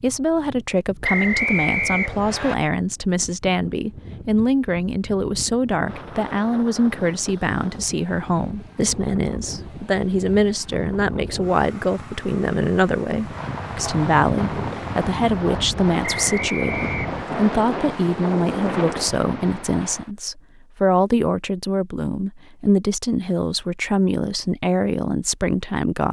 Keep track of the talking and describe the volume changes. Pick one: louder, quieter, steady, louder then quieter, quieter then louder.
steady.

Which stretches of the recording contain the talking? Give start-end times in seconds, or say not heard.
0.0-26.0.